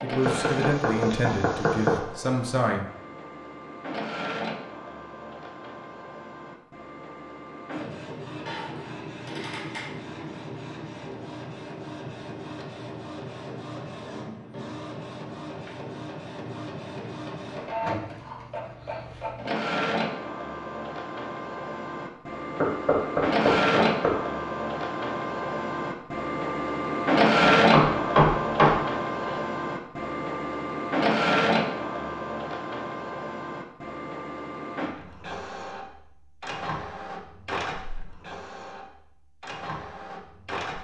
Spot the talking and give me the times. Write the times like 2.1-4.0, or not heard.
0.0-2.8.